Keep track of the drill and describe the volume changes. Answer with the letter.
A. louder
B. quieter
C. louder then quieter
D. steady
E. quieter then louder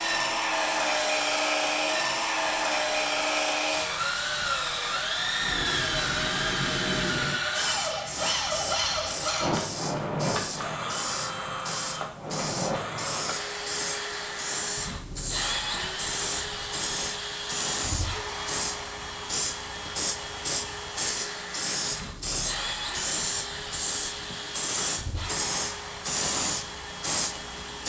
B.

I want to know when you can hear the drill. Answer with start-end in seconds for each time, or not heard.
0.0-27.8.